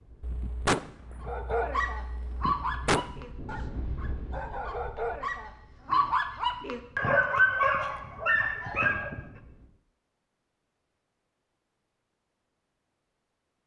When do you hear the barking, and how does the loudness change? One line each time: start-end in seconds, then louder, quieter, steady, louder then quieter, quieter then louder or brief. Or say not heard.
1.2-9.2 quieter then louder.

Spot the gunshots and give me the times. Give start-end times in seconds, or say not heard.
0.2-3.1.